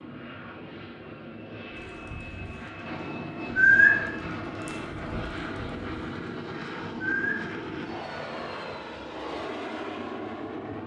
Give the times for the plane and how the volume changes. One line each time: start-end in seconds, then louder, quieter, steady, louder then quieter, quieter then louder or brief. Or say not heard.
0.0-10.8 louder.